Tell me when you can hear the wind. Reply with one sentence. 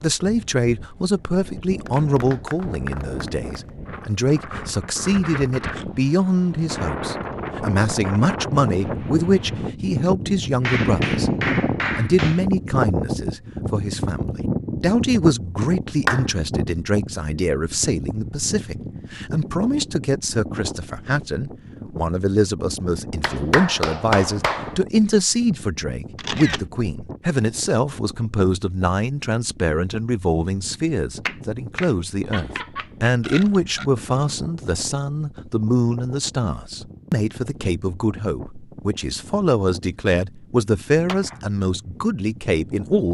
The wind can be heard from 0.0 to 43.1 s.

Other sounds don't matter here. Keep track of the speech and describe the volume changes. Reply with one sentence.
The volume of the speech stays about the same.